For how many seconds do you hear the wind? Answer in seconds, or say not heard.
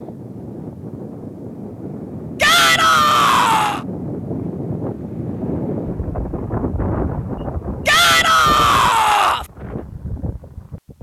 11 s.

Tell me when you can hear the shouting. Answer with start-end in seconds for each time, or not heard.
2.4-3.9, 7.8-9.4.